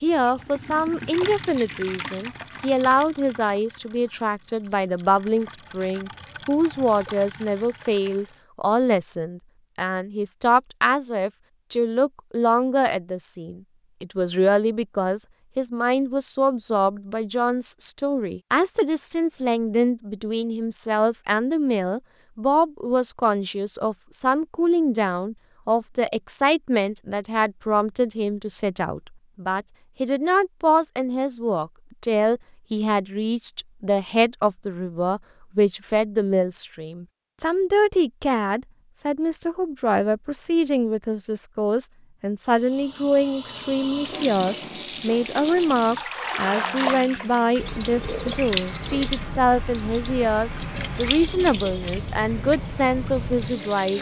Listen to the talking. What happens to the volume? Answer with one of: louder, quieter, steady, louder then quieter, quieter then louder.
steady.